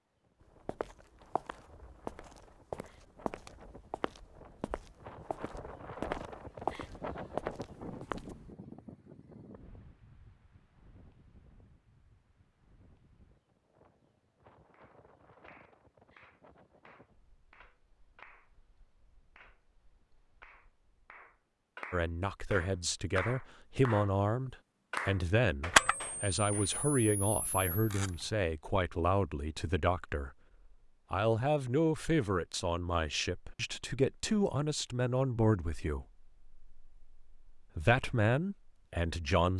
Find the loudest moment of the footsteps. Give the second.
7 s.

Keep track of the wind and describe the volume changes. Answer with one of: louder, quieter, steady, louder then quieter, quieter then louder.
louder then quieter.